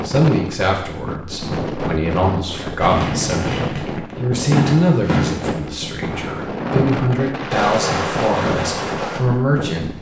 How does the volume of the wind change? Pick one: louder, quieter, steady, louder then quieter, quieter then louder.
steady.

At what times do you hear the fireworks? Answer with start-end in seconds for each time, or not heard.
2.8-9.2.